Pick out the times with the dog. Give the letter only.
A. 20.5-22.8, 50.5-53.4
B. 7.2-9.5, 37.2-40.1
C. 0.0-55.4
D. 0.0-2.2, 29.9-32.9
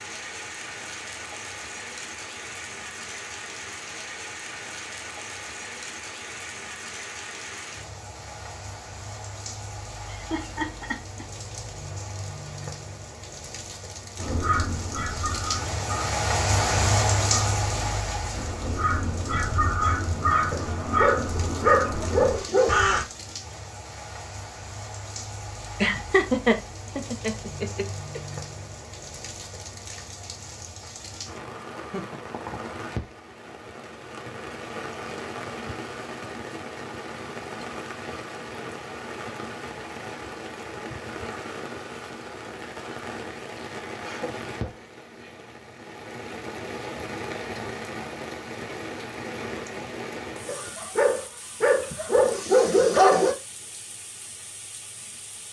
A.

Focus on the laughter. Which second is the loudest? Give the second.
26 s.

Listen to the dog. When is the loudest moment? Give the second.
53 s.